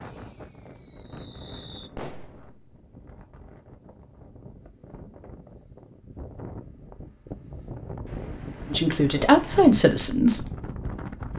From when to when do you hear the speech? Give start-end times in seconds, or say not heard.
8.7-10.5.